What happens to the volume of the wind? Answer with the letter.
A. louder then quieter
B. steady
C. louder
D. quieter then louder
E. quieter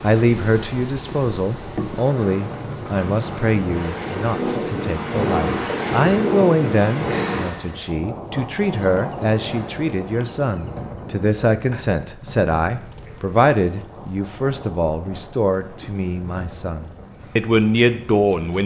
A.